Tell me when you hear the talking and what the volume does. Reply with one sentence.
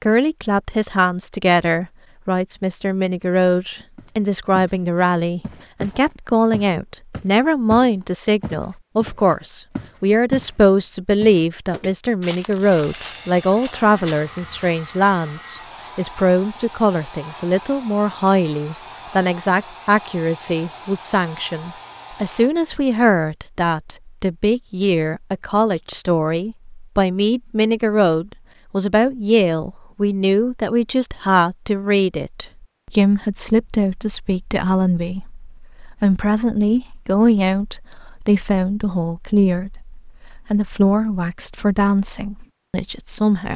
You can hear the talking from 0.0 to 43.5 s, at a steady volume.